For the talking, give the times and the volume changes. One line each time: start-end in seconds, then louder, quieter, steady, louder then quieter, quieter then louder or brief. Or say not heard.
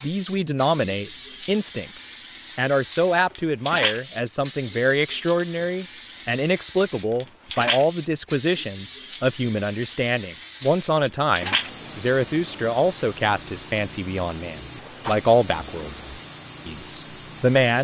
0.0-17.8 steady.